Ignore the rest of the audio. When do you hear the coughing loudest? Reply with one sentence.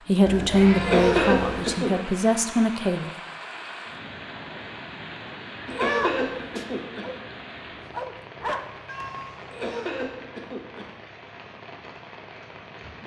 The volume of the coughing peaks at 1 second.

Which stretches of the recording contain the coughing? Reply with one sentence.
You can hear the coughing from 0.8 to 1.9 s, from 5.7 to 7.0 s and from 9.5 to 10.8 s.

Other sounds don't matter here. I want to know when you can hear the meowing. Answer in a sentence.
You can hear the meowing from 0.2 to 1.7 s, from 5.7 to 6.7 s and from 8.8 to 9.6 s.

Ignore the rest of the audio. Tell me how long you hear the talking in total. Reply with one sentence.
You can hear the talking for 3 seconds altogether.